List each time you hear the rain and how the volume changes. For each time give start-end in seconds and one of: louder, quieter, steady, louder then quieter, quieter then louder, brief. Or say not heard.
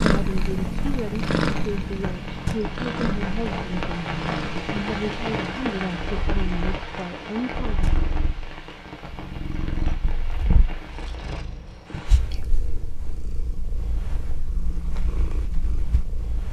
0.0-12.3 louder then quieter.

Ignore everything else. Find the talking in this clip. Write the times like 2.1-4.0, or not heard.
0.0-7.9.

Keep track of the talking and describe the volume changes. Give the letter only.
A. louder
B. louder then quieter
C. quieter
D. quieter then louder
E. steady
E.